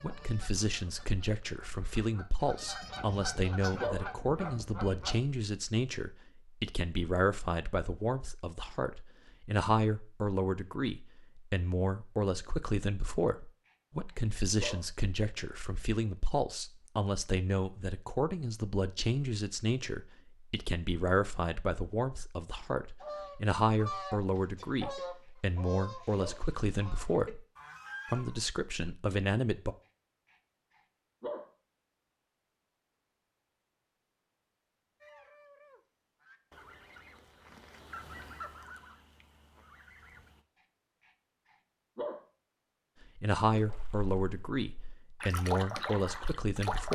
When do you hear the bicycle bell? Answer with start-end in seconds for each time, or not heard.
not heard.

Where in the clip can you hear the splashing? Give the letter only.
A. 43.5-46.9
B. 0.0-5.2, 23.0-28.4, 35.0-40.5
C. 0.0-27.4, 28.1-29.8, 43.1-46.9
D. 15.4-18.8
A.